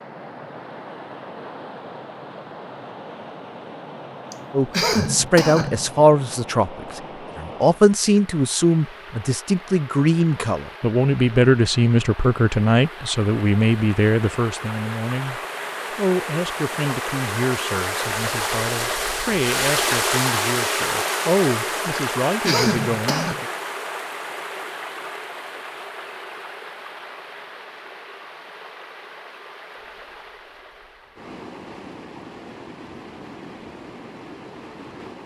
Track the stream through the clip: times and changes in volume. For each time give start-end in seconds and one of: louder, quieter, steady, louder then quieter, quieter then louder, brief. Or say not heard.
0.0-35.2 louder then quieter.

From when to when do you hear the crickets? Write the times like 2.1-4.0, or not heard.
not heard.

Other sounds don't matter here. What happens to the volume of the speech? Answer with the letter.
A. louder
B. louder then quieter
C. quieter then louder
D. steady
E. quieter
E.